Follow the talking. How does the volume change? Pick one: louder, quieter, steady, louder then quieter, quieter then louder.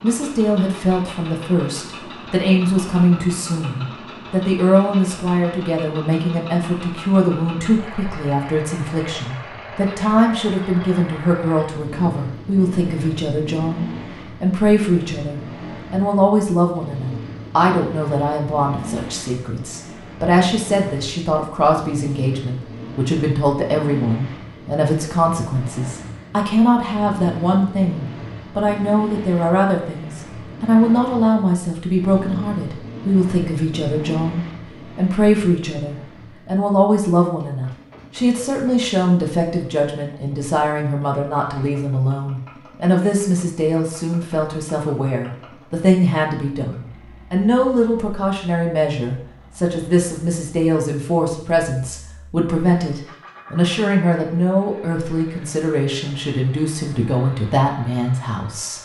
steady.